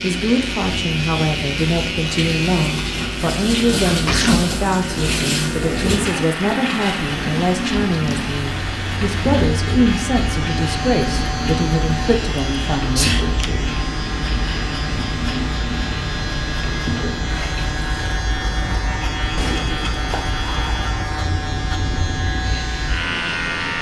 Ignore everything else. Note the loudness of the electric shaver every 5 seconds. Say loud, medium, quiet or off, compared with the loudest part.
loud, medium, loud, loud, loud.